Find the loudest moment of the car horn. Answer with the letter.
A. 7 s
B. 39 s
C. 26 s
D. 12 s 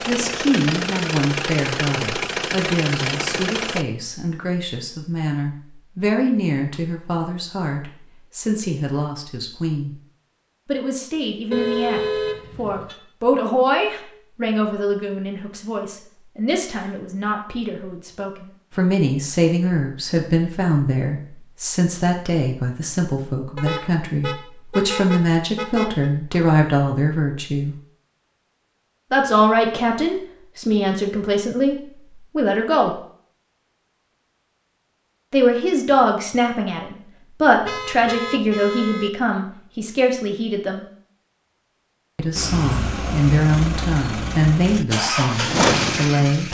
D.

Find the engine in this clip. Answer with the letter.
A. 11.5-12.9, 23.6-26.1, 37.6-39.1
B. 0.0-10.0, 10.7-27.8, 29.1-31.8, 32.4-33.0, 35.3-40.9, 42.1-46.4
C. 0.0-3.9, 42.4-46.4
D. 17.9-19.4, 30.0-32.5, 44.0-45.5
C.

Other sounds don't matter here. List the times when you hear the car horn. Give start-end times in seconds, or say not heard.
11.5-12.9, 23.6-26.1, 37.6-39.1.